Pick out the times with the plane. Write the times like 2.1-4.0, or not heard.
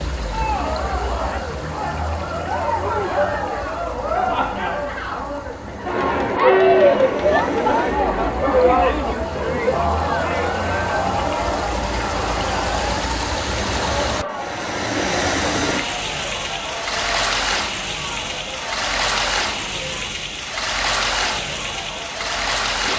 not heard.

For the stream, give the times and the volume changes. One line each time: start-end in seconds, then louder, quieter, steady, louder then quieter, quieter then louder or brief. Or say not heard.
0.0-22.9 louder.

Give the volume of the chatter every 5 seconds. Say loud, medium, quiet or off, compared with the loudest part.
medium, loud, medium, quiet, quiet.